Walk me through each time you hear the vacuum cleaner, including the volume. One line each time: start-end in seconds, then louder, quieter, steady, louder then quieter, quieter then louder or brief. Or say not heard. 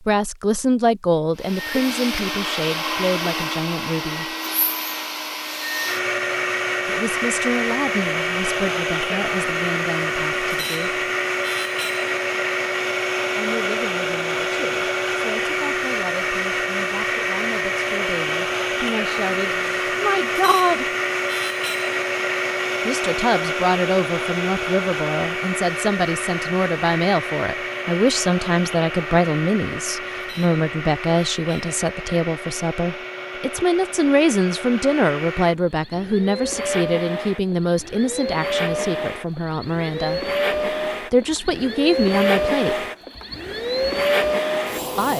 1.4-45.1 quieter then louder.